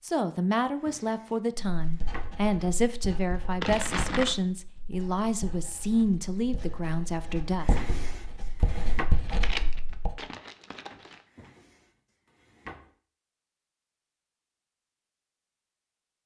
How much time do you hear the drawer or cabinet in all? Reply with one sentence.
You can hear the drawer or cabinet for 5 seconds altogether.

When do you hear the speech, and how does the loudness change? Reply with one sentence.
You can hear the speech from 0.0 to 7.8 s, at a steady volume.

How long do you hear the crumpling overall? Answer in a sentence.
You can hear the crumpling for 3 seconds altogether.